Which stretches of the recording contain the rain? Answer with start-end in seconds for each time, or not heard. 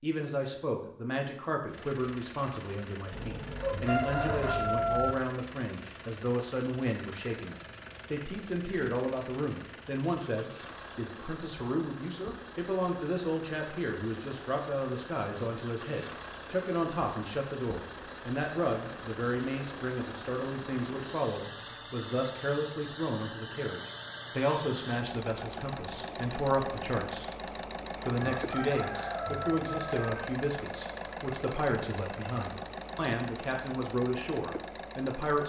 not heard.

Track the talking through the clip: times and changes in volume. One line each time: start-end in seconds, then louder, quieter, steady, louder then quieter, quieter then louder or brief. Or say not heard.
0.0-35.4 steady.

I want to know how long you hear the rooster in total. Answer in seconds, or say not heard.
4 s.